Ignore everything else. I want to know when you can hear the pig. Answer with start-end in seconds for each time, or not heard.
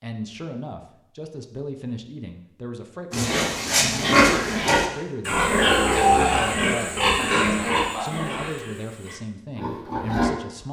3.1-10.3.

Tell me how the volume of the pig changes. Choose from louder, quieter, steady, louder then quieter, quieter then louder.
quieter.